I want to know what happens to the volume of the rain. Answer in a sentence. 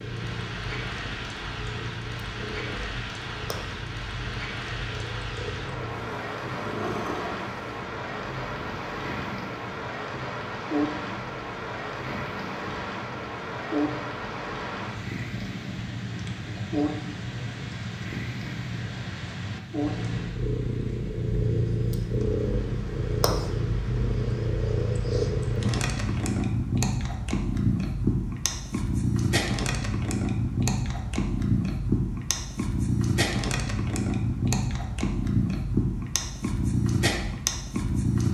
The volume of the rain goes down.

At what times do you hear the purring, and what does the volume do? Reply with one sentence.
The purring can be heard from 0.0 to 38.2 s, getting louder.